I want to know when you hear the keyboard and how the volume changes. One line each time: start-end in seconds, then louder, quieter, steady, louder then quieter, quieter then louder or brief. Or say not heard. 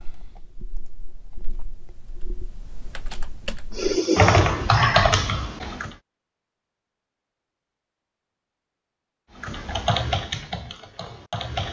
0.0-6.0 louder
9.3-11.6 brief.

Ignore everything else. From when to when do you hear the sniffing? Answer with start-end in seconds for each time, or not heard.
3.7-5.2.